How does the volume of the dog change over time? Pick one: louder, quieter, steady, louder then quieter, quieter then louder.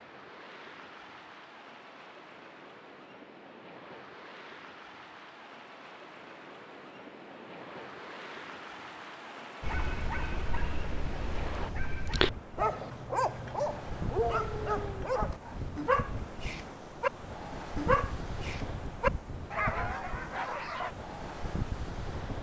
louder.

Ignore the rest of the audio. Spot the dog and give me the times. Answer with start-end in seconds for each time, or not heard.
9.6-20.9.